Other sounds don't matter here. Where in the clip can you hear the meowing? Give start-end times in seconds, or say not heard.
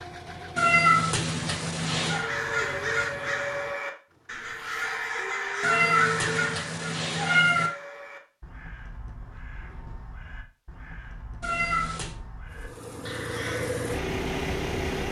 0.6-2.2, 5.6-7.7, 11.4-12.2.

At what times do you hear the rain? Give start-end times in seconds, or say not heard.
not heard.